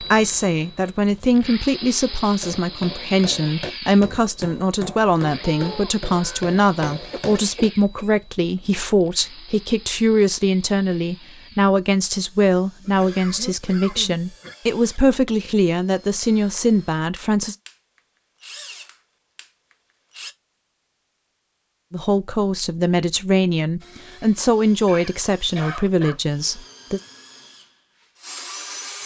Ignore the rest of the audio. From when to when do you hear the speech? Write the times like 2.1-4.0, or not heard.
0.0-17.6, 21.9-27.0.